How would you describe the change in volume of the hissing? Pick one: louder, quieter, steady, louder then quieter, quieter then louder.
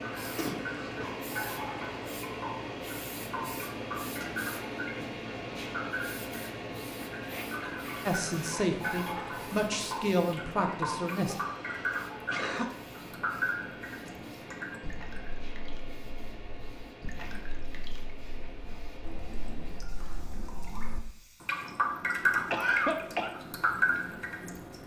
quieter.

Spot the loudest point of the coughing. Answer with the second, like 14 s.
23 s.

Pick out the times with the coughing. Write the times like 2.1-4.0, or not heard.
0.2-1.1, 11.5-12.7, 22.5-23.3.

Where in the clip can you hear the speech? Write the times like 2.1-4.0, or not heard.
8.1-11.3.